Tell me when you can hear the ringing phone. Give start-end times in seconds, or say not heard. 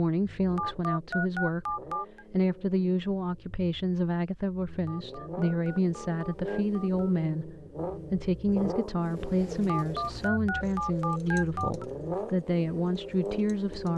0.6-2.2, 4.8-7.2, 9.7-11.8.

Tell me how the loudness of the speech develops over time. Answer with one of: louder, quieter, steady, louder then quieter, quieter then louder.
steady.